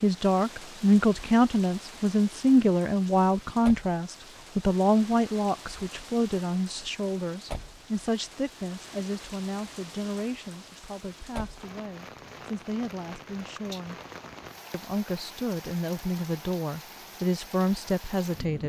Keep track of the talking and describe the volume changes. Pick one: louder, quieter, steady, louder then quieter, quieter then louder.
quieter then louder.